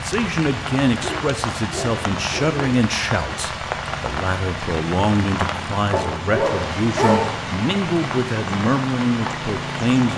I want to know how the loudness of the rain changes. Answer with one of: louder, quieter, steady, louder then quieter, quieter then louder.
steady.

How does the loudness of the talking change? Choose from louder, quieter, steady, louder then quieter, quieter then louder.
steady.